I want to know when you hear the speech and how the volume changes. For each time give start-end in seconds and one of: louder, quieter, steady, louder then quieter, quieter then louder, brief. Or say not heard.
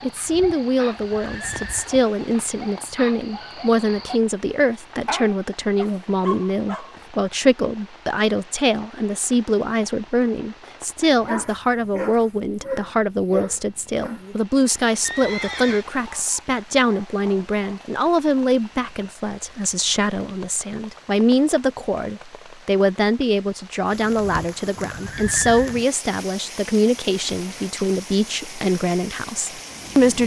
0.0-30.2 steady.